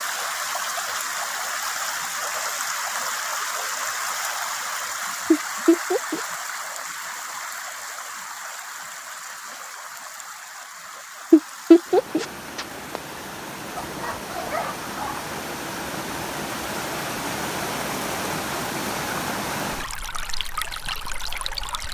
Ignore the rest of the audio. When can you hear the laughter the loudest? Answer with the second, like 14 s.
12 s.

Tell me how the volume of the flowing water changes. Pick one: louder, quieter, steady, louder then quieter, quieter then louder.
quieter then louder.